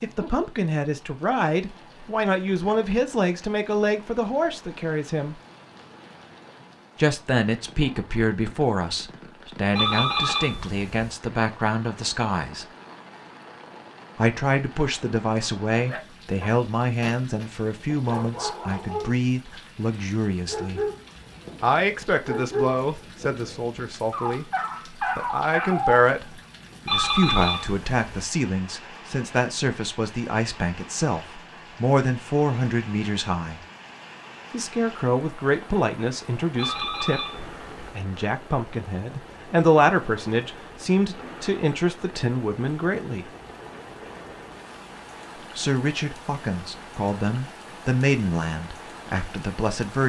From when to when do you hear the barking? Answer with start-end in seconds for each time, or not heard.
15.8-26.0.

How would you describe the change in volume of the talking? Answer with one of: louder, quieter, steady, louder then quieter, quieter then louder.
steady.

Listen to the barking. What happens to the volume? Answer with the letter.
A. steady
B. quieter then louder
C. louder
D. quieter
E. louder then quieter
C.